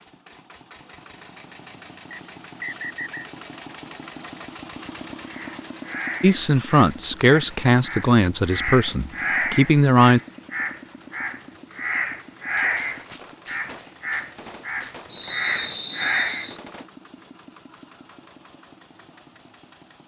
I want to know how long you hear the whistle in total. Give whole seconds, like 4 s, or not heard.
3 s.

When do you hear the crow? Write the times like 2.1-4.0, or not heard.
5.2-16.5.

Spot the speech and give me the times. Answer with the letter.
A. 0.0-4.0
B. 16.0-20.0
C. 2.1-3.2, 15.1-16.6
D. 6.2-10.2
D.